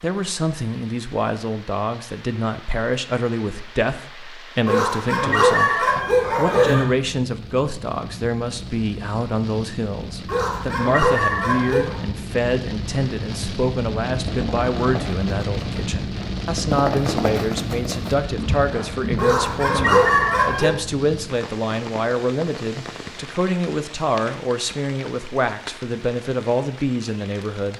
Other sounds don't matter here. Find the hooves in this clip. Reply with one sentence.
The hooves can be heard from 14.1 to 20.3 s.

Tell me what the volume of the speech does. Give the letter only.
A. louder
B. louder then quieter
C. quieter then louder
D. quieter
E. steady
E.